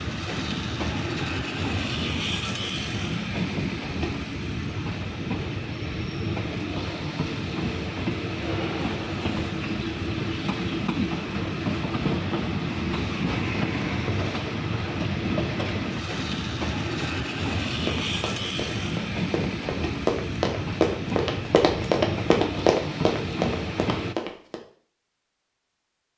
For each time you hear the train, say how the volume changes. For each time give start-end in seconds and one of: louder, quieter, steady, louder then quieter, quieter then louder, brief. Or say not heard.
0.0-24.1 steady.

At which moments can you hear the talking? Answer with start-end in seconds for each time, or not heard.
not heard.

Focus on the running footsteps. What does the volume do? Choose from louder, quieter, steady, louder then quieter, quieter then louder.
louder then quieter.